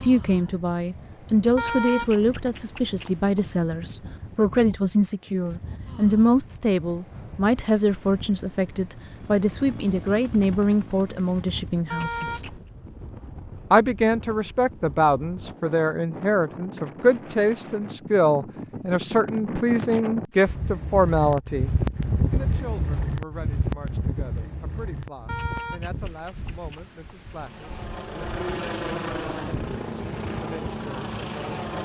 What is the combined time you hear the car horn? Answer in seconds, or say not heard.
4 s.